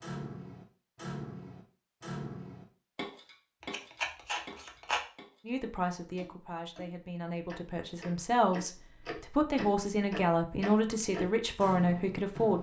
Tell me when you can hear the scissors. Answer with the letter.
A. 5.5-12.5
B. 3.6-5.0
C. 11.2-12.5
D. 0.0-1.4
B.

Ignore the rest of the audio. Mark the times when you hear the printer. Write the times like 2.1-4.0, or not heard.
not heard.